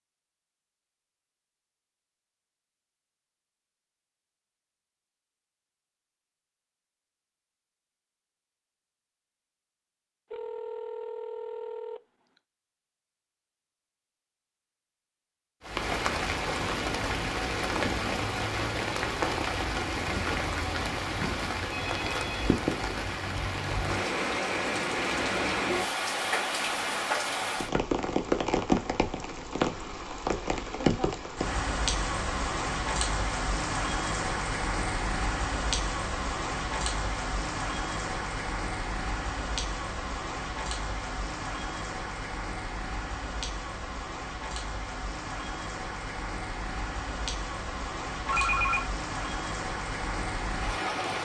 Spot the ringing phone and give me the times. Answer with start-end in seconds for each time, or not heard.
10.3-12.0, 21.7-22.4, 48.2-48.9.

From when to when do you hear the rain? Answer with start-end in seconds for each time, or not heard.
15.6-51.2.